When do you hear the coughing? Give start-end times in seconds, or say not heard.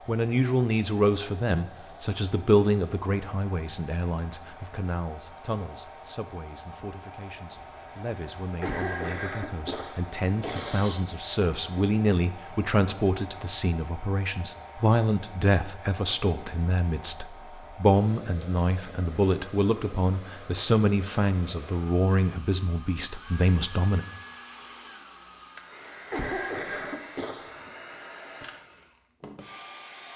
8.6-11.0, 26.1-27.7.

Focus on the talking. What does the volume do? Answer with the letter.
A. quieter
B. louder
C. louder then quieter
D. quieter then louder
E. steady
D.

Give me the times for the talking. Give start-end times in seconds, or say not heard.
0.1-24.1.